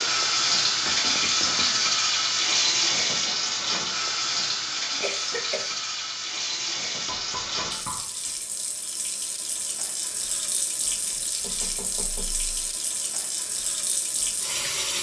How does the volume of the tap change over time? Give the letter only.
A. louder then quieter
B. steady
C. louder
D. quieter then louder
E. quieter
E.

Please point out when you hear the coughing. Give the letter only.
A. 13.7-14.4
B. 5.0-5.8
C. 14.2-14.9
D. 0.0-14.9
B.